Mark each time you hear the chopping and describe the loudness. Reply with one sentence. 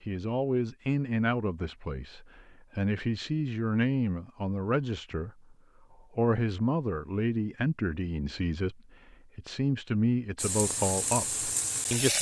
The chopping can't be heard in this clip.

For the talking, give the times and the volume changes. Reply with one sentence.
You can hear the talking from 0.0 to 12.1 s, at a steady volume.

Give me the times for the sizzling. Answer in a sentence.
The sizzling can be heard from 10.3 to 12.1 s.